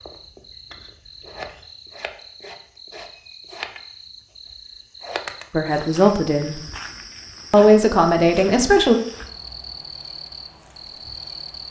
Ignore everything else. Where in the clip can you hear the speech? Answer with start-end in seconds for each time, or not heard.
5.5-6.6, 7.5-9.0.